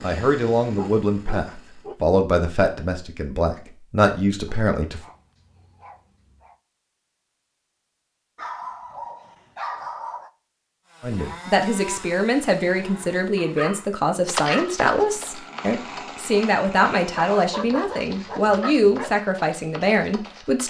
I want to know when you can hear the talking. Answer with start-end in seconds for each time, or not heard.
0.0-5.0, 11.0-20.6.